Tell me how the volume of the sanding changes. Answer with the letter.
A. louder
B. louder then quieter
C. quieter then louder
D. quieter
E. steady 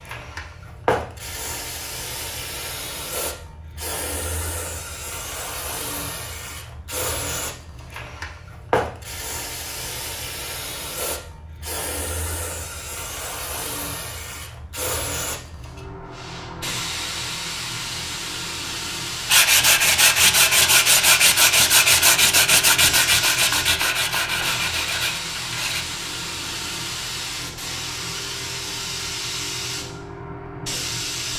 D.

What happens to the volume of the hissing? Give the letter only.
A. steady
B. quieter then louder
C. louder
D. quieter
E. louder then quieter
A.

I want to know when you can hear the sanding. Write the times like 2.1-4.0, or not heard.
19.2-25.9.